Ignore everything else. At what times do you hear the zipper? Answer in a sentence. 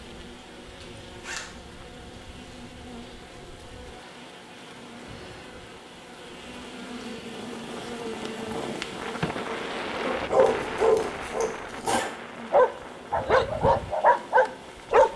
You can hear the zipper from 0.8 to 1.5 s and from 10.4 to 12.1 s.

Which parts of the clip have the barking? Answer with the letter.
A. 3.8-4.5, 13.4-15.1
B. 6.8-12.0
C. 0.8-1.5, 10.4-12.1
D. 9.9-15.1
D.